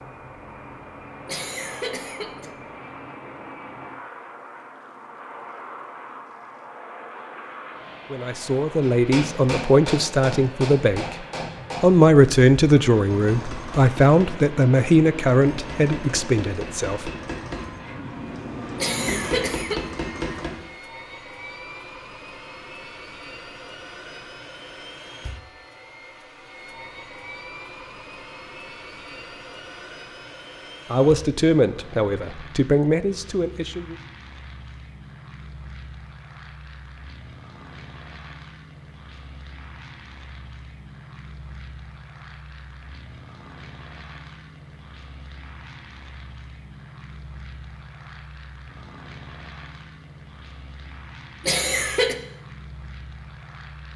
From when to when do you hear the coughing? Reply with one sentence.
You can hear the coughing from 1.2 to 2.5 s, from 18.8 to 19.9 s and from 51.4 to 52.1 s.